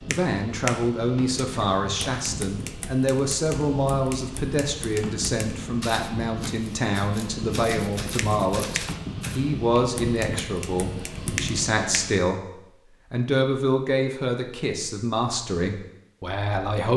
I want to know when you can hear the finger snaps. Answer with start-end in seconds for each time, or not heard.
0.1-0.9, 8.2-9.0, 11.3-12.2.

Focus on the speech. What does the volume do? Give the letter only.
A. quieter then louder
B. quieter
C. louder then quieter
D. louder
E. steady
E.